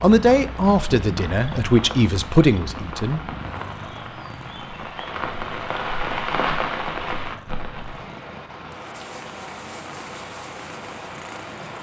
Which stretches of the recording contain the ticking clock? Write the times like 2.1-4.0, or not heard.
not heard.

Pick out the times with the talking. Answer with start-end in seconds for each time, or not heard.
0.0-3.3.